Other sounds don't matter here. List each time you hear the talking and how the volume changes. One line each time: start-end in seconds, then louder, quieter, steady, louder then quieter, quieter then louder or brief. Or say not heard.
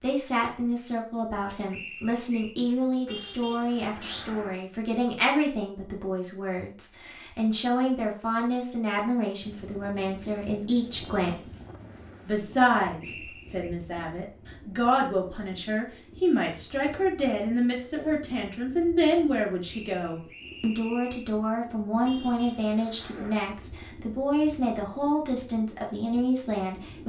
0.0-11.7 steady
12.2-27.0 steady.